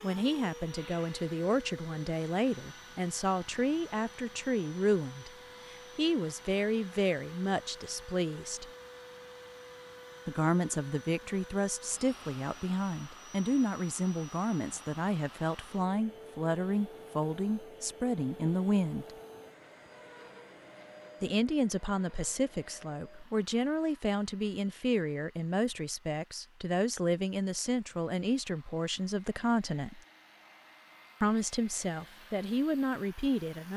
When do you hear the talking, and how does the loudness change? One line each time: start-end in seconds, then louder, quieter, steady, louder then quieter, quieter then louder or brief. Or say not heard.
0.0-8.7 steady
10.2-19.1 steady
21.2-30.0 steady
31.2-33.7 brief.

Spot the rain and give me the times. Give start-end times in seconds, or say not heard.
not heard.